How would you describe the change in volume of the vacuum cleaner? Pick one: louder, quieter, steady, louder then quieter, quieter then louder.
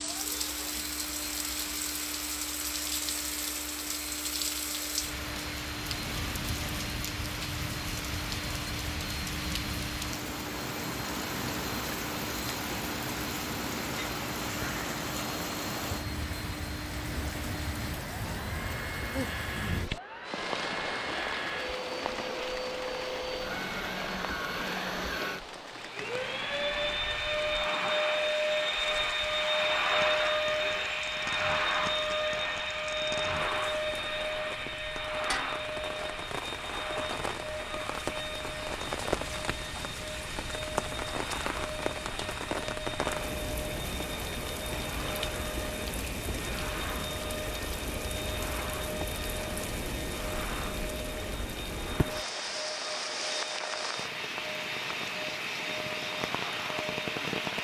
louder then quieter.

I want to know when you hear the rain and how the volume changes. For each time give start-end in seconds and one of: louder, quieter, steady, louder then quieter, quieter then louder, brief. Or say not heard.
0.0-57.5 quieter then louder.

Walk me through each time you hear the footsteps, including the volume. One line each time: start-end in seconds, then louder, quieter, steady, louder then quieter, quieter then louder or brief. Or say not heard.
not heard.